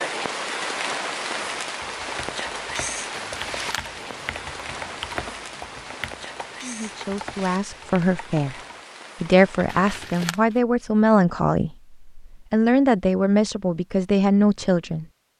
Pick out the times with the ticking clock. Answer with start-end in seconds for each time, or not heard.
not heard.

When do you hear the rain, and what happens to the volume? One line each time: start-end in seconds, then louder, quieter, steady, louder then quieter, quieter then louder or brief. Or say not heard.
0.0-9.8 quieter.